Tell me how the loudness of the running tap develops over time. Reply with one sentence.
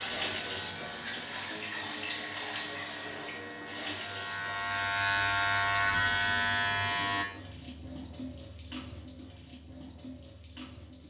The loudness of the running tap goes down.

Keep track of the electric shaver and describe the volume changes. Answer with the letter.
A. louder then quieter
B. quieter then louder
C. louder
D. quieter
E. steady
C.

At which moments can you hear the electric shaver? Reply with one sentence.
You can hear the electric shaver from 0.0 to 7.2 s.